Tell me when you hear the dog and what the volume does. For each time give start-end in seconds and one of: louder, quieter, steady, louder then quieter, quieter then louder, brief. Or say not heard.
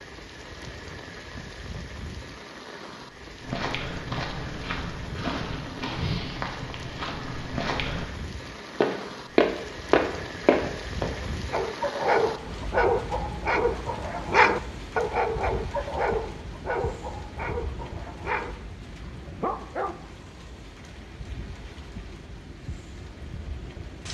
11.5-20.0 quieter.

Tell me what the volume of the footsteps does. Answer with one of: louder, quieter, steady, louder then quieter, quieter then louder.
louder.